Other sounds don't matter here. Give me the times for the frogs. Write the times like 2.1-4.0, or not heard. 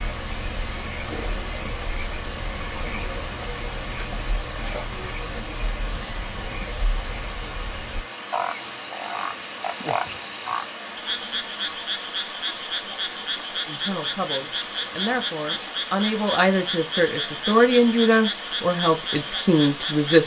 0.0-20.2.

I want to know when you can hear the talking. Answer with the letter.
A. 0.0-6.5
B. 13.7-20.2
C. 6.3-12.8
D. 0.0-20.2
B.